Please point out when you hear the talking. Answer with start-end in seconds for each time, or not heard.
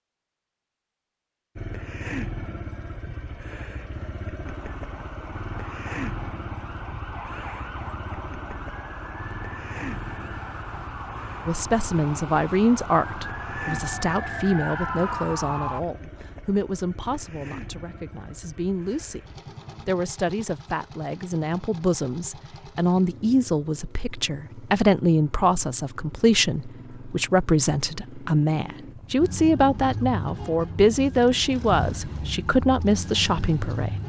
11.4-19.2, 19.9-33.9.